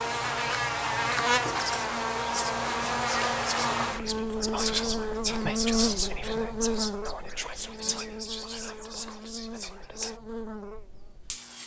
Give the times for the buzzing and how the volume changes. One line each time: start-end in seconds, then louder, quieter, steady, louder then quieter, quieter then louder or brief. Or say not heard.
0.0-11.6 quieter.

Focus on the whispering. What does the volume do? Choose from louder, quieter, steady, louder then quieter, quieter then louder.
louder then quieter.